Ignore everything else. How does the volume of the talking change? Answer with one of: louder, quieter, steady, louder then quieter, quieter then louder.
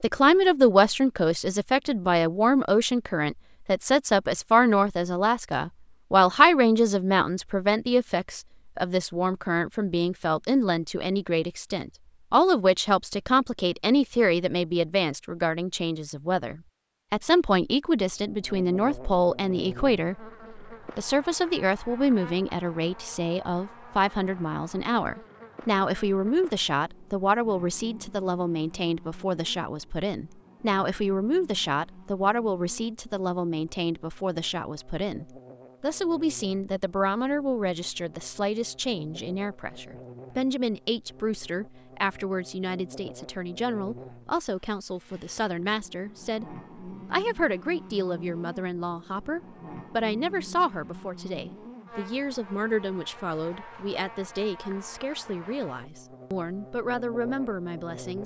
quieter.